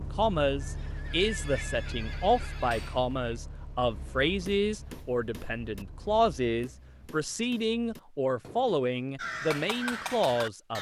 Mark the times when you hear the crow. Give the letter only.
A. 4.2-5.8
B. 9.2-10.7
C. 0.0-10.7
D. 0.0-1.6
B.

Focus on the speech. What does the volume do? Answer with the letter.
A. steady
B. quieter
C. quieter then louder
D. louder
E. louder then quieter
A.